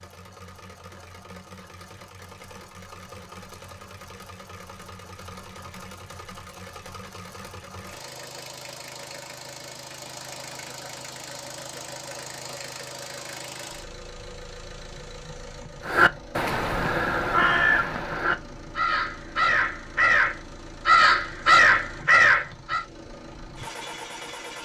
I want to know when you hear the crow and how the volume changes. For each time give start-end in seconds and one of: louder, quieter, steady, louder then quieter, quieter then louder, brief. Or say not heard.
15.8-22.9 louder.